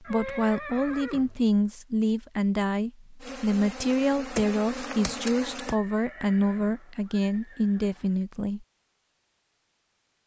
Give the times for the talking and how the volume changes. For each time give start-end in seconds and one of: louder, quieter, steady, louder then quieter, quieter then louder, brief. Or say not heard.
0.0-8.7 steady.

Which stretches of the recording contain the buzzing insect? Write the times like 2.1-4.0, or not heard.
3.2-5.8.